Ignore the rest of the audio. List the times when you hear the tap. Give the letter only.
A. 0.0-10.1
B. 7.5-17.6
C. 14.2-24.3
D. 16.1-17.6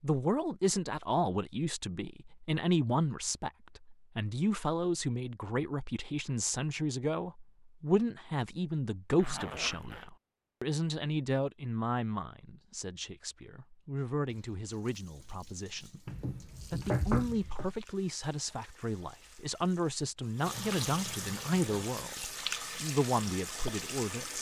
C.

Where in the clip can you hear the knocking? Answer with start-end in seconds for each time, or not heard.
16.1-17.6.